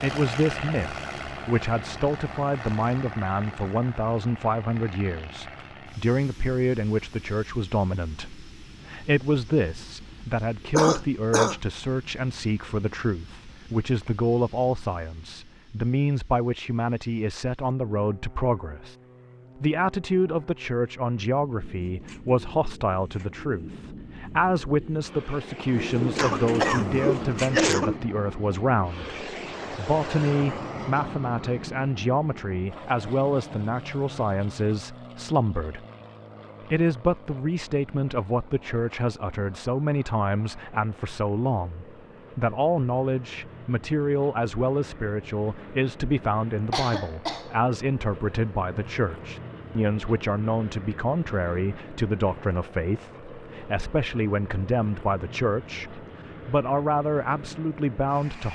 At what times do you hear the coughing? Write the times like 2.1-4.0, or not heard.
10.8-11.6, 26.1-27.9, 46.7-47.5.